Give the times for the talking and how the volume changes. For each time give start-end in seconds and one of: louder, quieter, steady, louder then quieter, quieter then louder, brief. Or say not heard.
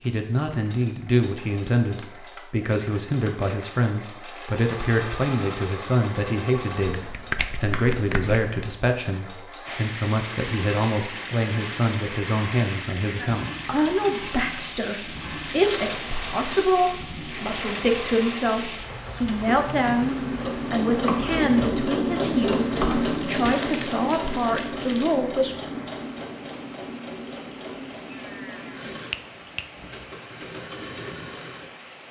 0.0-25.6 steady.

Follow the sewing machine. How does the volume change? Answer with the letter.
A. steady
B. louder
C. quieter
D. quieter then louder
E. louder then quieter
E.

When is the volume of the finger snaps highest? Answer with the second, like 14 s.
7 s.